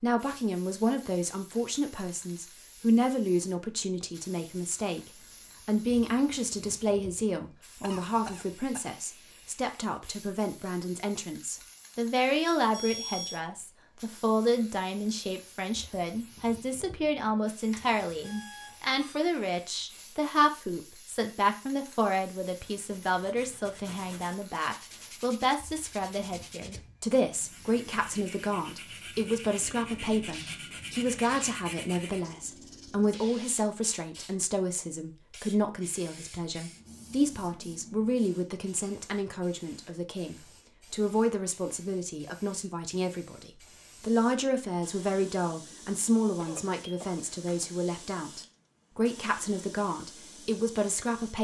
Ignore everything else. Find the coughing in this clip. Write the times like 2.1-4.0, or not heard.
7.8-9.4, 46.4-47.7.